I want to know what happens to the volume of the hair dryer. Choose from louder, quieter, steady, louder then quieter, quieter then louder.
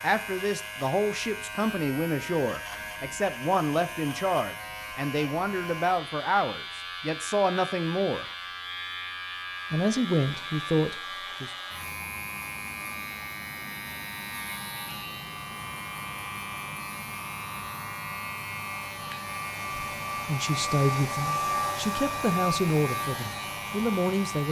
louder.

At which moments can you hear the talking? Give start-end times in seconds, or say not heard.
0.0-8.2, 9.7-11.5, 20.2-24.4.